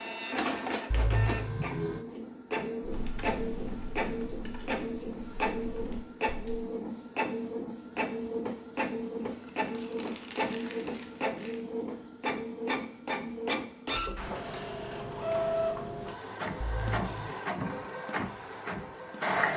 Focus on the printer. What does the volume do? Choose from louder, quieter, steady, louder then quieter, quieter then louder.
steady.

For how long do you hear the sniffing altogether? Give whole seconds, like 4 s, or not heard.
2 s.